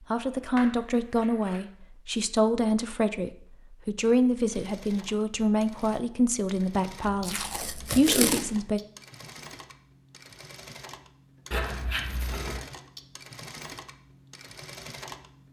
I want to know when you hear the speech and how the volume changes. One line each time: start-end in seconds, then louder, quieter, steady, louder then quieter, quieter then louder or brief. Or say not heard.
0.1-8.8 steady.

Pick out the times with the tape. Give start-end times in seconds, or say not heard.
7.2-8.5.